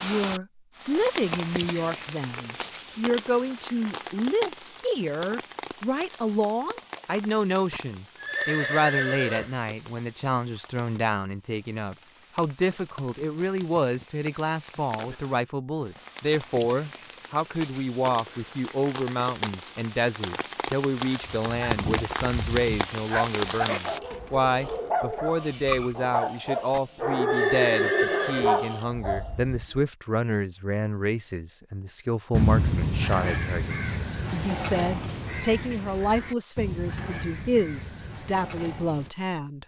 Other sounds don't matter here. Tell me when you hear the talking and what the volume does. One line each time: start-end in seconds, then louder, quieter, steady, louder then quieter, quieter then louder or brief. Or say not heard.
0.0-39.6 steady.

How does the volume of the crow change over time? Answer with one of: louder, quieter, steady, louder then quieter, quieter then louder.
quieter.